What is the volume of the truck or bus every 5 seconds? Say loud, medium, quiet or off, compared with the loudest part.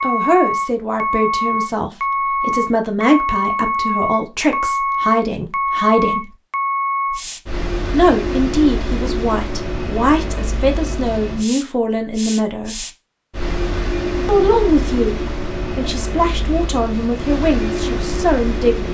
loud, loud, medium, medium.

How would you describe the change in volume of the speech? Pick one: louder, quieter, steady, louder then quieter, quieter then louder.
steady.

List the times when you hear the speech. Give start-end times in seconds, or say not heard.
0.0-6.3, 7.9-12.8, 14.2-18.8.